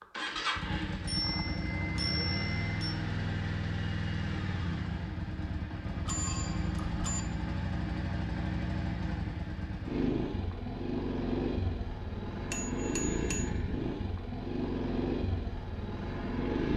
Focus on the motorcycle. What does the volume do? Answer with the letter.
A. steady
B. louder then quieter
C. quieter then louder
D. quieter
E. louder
A.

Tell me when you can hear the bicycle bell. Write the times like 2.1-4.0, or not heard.
1.1-3.0, 6.0-7.2, 12.5-13.4.